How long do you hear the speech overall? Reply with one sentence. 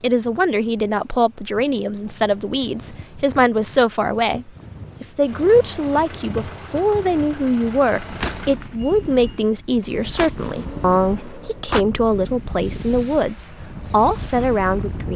The speech can be heard for 15 seconds in total.